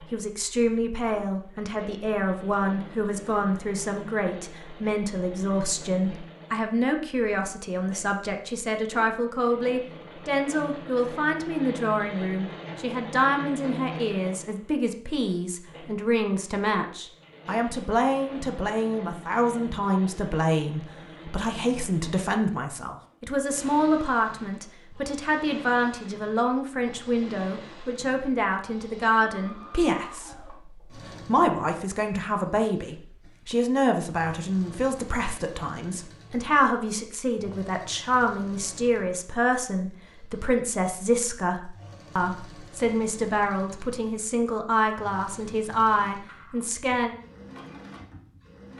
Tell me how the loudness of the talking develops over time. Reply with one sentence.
The volume of the talking stays about the same.